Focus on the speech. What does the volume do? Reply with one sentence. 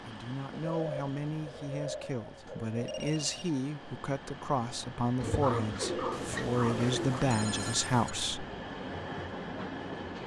The volume of the speech goes up.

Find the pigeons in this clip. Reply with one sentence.
You can hear the pigeons from 0.5 to 3.5 s and from 5.2 to 7.2 s.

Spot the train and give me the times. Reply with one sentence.
You can hear the train from 0.0 to 10.2 s.